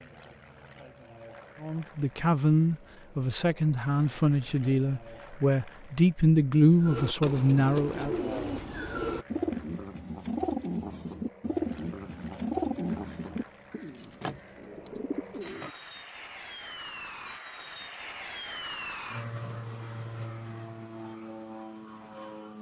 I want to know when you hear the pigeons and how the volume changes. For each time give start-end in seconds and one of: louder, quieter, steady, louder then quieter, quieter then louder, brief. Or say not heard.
6.8-15.7 quieter.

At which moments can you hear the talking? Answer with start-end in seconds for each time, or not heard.
1.6-8.2.